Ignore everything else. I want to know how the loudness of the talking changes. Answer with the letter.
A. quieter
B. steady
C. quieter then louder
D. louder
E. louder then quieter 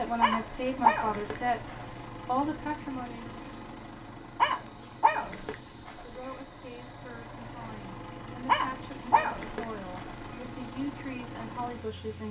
C.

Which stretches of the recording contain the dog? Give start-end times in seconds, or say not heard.
0.2-2.0, 4.3-6.5, 8.4-10.2.